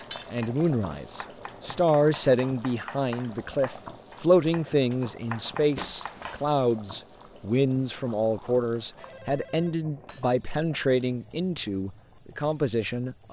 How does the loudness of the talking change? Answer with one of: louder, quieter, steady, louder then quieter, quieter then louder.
steady.